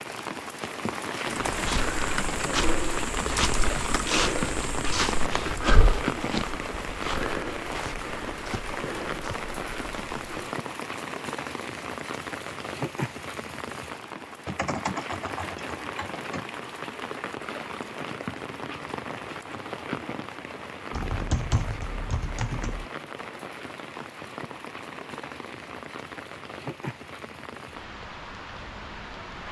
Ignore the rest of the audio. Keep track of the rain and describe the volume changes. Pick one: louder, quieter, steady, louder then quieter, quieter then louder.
quieter.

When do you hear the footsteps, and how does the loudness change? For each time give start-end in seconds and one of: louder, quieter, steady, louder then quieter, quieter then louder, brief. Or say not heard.
1.4-10.6 quieter.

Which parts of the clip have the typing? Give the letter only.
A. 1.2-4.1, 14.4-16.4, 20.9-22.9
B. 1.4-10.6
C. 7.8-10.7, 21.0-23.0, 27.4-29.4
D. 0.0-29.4
A.